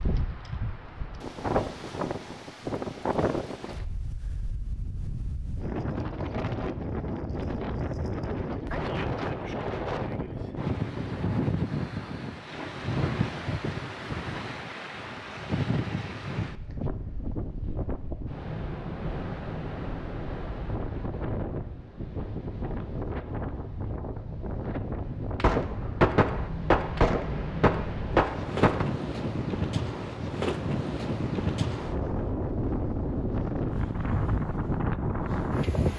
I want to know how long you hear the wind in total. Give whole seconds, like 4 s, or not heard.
36 s.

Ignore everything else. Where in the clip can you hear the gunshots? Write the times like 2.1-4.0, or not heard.
25.4-28.9.